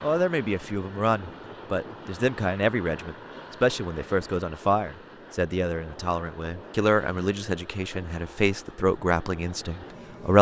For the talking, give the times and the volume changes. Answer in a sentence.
The talking can be heard from 0.0 to 10.3 s, at a steady volume.